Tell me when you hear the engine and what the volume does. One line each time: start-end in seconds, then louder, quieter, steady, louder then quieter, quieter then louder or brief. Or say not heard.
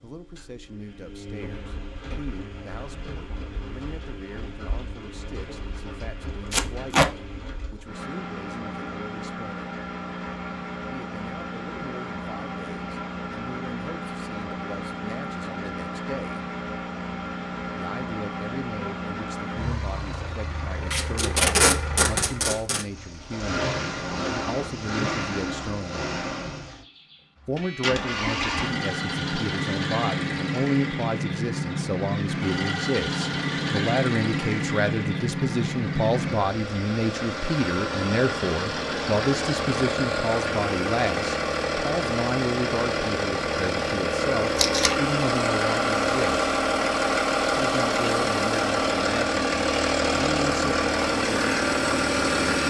0.0-52.6 louder.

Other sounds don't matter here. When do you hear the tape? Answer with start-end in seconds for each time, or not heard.
6.5-7.1, 20.9-22.9, 44.5-45.0.